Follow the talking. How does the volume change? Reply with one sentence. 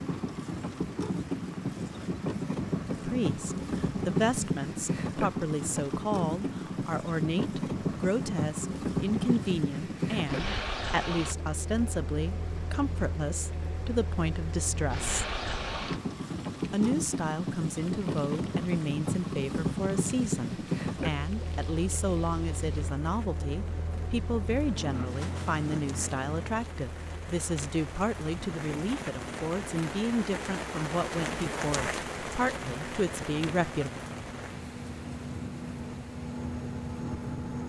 The loudness of the talking stays about the same.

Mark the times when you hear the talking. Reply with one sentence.
The talking can be heard from 2.9 to 15.3 s and from 16.7 to 34.0 s.